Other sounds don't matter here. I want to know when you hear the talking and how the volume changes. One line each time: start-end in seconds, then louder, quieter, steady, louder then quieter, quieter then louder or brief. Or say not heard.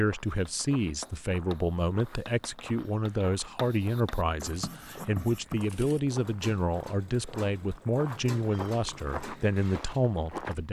0.0-10.6 steady.